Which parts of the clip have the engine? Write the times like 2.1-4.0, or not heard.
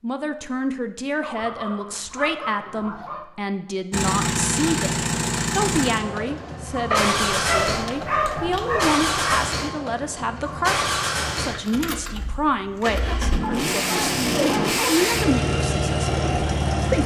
3.9-17.0.